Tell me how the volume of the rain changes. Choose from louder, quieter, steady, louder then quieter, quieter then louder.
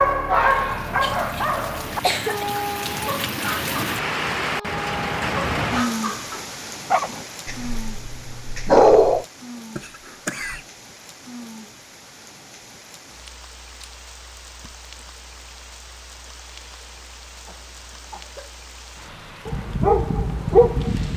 quieter.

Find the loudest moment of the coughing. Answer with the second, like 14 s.
2 s.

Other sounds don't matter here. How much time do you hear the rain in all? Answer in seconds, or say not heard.
21 s.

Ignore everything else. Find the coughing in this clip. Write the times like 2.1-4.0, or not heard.
0.5-2.5, 9.8-10.7, 17.4-18.5.